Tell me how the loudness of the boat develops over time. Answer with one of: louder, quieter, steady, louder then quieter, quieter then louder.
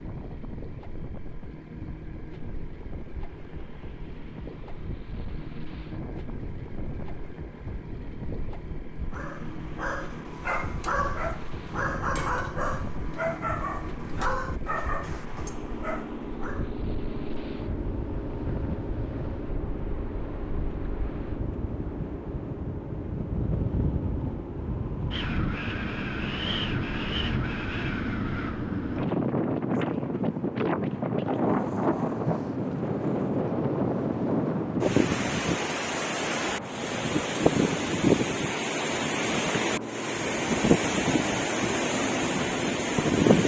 louder.